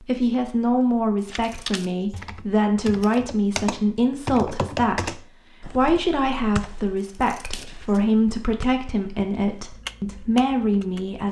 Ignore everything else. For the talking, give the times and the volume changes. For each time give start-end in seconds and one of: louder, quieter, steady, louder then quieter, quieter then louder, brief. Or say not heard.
0.0-11.2 steady.